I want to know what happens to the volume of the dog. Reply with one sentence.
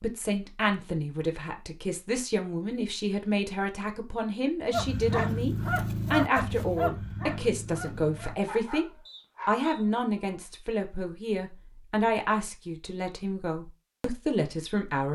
The loudness of the dog goes down.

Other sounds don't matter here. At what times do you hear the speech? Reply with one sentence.
The speech can be heard from 0.0 to 8.8 s and from 9.4 to 15.0 s.